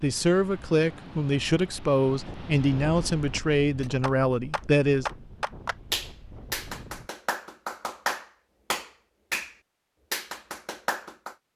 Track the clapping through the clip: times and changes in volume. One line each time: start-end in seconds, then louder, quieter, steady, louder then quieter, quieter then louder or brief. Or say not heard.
3.8-11.3 steady.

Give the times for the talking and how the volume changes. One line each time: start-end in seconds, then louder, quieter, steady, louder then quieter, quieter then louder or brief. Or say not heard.
0.0-5.0 steady.